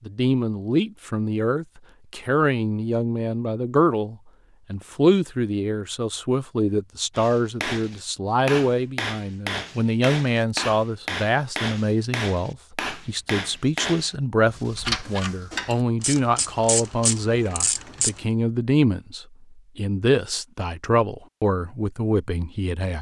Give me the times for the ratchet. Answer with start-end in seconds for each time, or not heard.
14.4-18.2.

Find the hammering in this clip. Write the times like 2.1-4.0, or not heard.
7.1-14.2.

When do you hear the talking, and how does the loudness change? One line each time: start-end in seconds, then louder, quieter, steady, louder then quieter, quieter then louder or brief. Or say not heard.
0.1-22.9 steady.